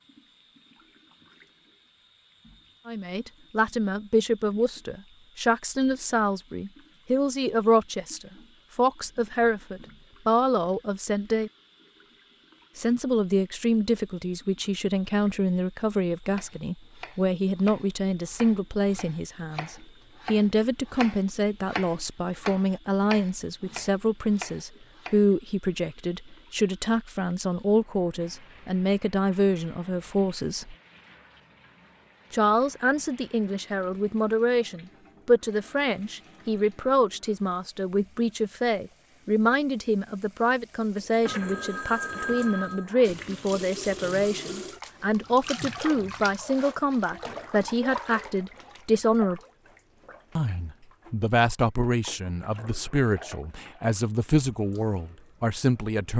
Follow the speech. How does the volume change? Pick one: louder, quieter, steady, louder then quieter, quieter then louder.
steady.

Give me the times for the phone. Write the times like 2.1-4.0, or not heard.
41.2-42.9.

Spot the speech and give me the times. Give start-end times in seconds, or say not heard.
2.9-11.5, 12.8-30.8, 32.3-49.4, 50.4-56.1.